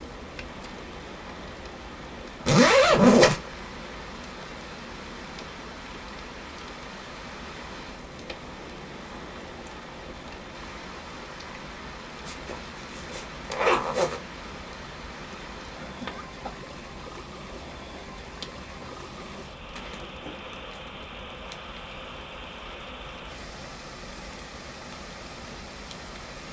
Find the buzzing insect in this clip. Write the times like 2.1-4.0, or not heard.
not heard.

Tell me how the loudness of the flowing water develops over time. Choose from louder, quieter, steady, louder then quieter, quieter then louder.
steady.